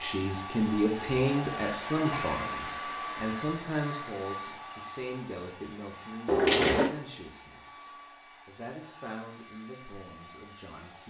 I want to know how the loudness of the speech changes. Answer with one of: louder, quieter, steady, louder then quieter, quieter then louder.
quieter.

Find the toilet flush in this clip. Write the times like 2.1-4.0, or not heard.
1.9-3.3, 6.2-6.9.